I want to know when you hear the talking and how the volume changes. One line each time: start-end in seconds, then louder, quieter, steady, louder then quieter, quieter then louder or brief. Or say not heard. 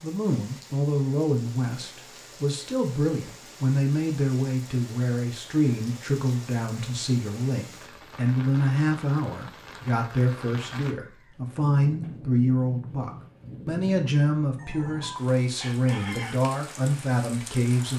0.0-17.9 steady.